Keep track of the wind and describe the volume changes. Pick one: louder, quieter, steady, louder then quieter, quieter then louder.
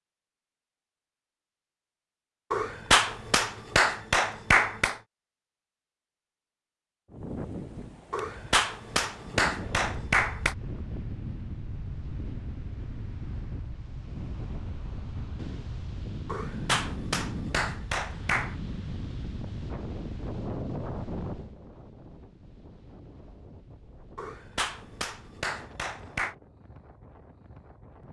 quieter.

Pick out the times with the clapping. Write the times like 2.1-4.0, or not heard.
2.5-5.0, 8.1-10.6, 16.2-18.6, 24.1-26.4.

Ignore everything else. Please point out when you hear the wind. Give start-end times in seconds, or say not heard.
7.0-28.0.